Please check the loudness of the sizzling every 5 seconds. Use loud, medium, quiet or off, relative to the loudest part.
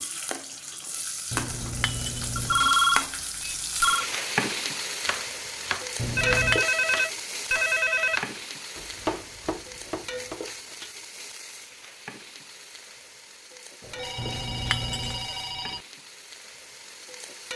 loud, loud, medium, medium.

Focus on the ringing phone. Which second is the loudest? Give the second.
3 s.